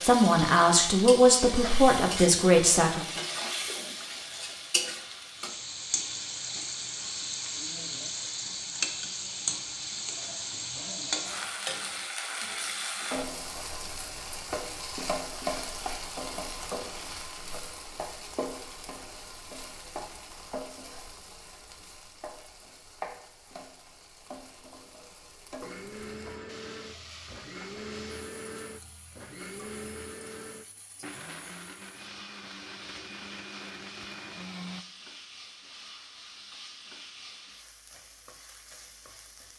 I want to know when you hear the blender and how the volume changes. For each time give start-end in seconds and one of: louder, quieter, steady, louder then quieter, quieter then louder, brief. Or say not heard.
25.6-34.9 steady.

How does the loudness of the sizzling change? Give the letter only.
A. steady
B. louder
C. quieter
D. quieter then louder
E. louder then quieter
C.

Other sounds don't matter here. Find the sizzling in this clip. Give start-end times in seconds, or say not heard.
0.0-39.5.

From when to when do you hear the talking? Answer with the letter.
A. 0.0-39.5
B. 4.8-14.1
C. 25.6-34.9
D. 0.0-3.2
D.